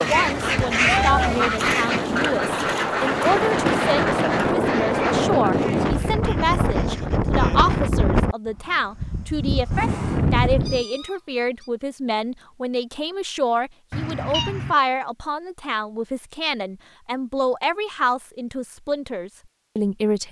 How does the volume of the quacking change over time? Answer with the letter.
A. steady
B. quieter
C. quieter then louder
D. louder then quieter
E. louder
B.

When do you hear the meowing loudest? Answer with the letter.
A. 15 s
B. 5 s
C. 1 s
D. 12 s
C.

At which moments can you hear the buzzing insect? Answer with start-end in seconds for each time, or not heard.
not heard.